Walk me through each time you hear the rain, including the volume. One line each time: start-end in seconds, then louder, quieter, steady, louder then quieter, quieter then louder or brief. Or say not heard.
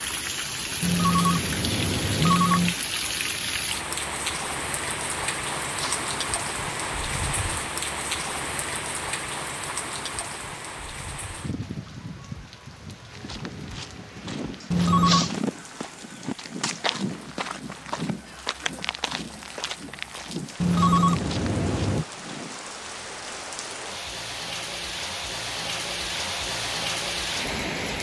0.0-27.9 quieter then louder.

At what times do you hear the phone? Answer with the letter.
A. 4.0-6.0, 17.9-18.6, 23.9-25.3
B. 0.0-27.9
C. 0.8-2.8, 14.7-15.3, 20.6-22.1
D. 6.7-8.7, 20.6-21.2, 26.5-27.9
C.